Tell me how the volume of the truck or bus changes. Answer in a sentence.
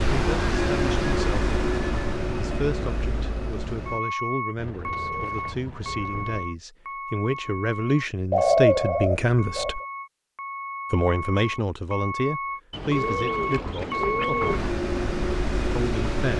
The volume of the truck or bus goes down, then up.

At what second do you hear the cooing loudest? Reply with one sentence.
The loudest moment of the cooing is at 9 seconds.